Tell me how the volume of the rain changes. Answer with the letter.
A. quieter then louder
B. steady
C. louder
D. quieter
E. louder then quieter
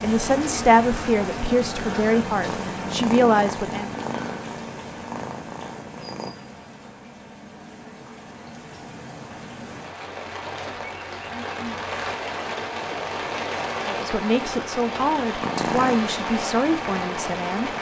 A.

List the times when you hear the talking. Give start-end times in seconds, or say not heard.
0.0-3.9, 13.8-17.7.